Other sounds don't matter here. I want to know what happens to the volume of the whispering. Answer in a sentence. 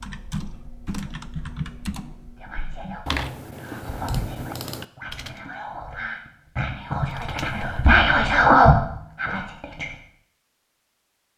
The volume of the whispering goes up.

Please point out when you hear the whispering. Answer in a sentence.
The whispering can be heard from 2.4 to 9.8 s.